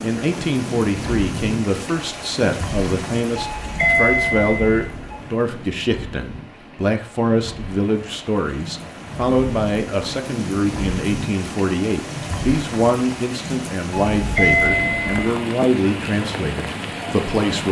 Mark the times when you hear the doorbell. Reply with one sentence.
The doorbell can be heard from 3.4 to 5.1 s and from 14.2 to 15.2 s.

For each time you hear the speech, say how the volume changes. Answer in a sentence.
You can hear the speech from 0.0 to 17.6 s, at a steady volume.